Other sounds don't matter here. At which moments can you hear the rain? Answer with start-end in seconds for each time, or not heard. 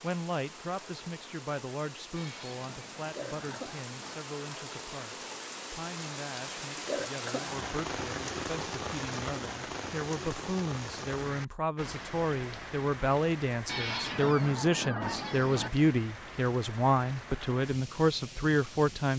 0.0-19.1.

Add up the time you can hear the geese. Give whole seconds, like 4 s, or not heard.
4 s.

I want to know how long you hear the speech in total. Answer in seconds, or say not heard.
19 s.